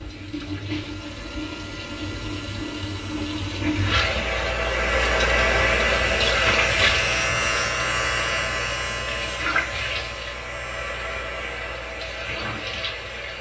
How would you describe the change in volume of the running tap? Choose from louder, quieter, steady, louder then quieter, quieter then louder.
louder then quieter.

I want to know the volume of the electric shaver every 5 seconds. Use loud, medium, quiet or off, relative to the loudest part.
quiet, loud, quiet.